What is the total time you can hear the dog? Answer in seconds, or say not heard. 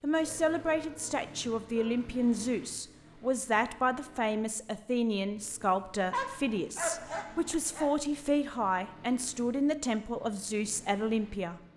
4 s.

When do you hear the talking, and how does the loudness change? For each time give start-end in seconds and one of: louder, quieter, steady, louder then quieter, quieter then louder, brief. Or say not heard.
0.0-11.6 steady.